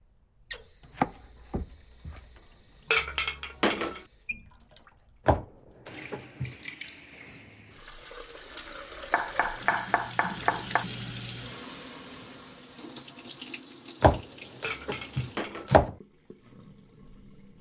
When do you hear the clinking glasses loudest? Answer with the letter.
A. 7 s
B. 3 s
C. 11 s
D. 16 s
B.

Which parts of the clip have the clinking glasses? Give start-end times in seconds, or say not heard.
2.9-4.0, 14.6-15.8.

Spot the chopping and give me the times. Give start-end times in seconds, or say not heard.
0.9-2.4, 5.2-6.5, 9.1-10.8, 14.0-15.9.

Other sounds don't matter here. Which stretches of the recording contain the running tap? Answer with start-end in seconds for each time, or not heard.
0.0-17.5.